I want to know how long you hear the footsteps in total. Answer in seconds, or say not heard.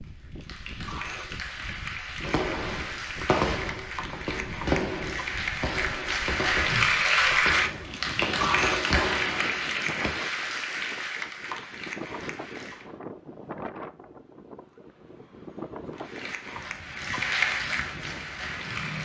not heard.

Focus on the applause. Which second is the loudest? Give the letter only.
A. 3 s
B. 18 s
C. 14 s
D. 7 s
D.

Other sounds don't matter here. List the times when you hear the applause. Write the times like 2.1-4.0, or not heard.
0.0-12.8, 15.9-19.0.